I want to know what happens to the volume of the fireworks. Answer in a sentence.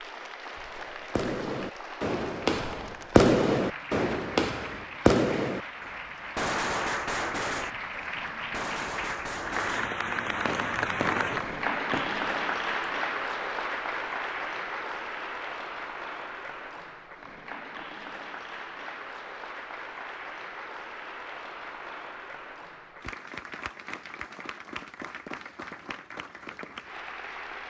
The volume of the fireworks goes down.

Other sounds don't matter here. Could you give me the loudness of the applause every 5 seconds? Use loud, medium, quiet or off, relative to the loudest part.
medium, medium, loud, medium, medium, medium.